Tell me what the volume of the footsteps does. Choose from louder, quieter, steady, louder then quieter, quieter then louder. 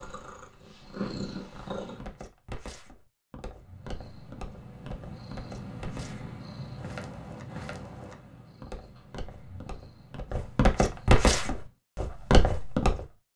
louder.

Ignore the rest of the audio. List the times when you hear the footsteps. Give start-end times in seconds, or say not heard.
1.8-13.1.